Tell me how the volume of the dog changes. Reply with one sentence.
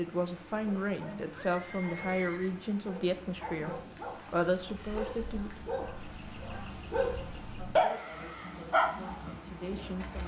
The loudness of the dog goes up.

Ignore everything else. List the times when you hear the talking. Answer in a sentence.
You can hear the talking from 0.0 to 5.5 s and from 7.5 to 10.2 s.